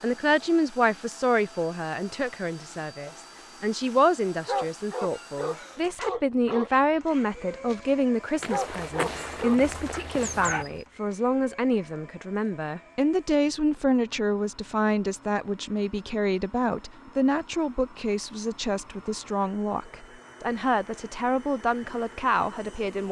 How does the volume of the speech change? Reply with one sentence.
The loudness of the speech stays about the same.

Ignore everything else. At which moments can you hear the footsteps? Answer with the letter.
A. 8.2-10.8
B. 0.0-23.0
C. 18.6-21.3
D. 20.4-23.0
A.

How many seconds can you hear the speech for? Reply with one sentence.
You can hear the speech for 23 seconds altogether.